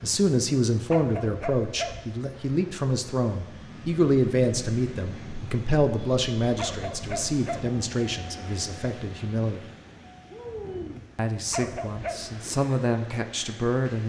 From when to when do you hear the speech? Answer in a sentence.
The speech can be heard from 0.0 to 9.6 s and from 11.2 to 14.0 s.